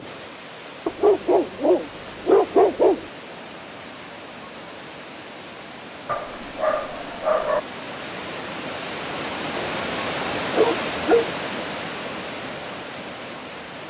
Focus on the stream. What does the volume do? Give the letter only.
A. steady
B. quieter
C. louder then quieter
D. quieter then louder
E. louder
E.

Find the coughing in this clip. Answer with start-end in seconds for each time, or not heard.
not heard.